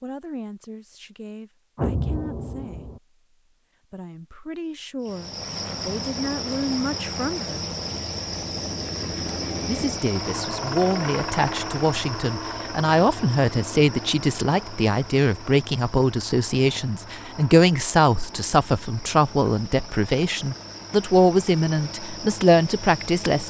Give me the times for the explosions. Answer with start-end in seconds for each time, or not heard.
1.8-3.0.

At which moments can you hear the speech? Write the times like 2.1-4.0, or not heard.
0.0-2.9, 3.9-7.6, 9.7-23.4.